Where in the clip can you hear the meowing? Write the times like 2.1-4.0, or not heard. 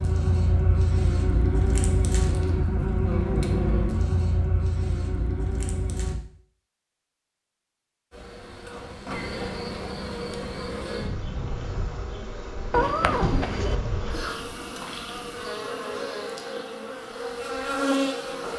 12.7-13.8.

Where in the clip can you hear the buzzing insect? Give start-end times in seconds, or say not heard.
0.0-6.2, 8.1-18.5.